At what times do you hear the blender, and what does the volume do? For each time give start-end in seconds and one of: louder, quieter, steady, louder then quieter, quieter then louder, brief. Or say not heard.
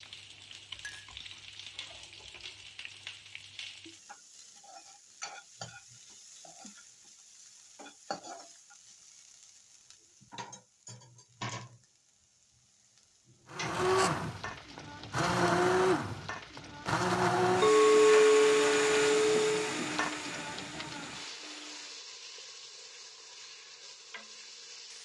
13.5-22.0 quieter.